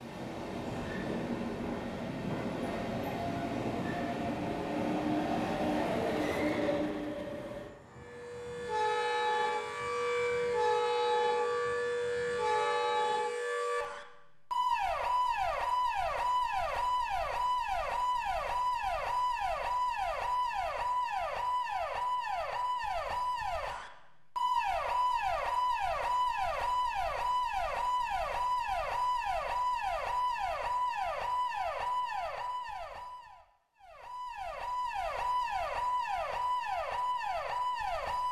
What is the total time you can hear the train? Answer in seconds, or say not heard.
13 s.